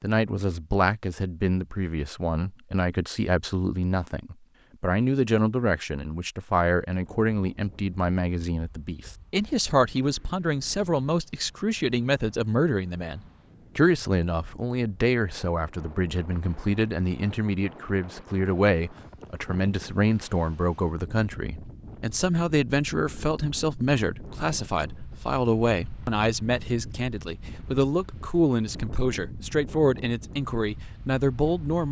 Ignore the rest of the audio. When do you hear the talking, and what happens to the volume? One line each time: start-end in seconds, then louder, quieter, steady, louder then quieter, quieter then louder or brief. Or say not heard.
0.0-31.8 steady.